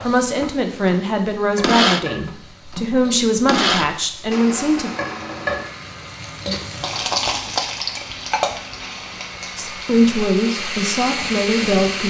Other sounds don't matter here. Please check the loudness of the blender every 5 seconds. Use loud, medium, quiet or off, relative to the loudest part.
loud, quiet, loud.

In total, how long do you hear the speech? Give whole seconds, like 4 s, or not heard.
7 s.